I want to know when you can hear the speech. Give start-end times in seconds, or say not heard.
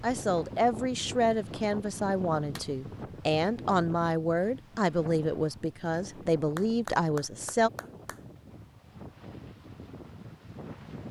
0.0-7.7.